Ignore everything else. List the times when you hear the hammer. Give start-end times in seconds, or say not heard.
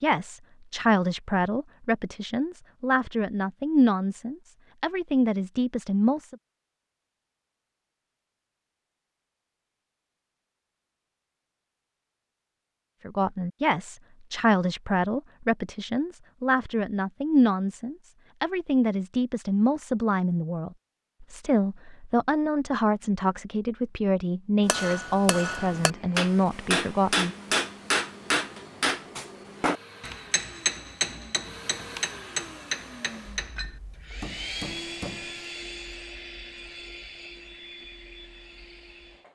24.6-35.5.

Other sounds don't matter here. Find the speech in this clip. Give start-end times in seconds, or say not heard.
0.0-6.3, 13.1-27.3.